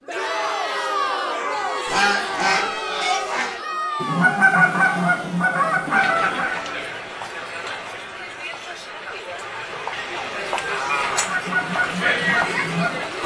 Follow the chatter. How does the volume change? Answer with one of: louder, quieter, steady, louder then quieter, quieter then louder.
quieter then louder.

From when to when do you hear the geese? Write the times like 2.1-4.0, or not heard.
1.4-6.7, 11.1-13.2.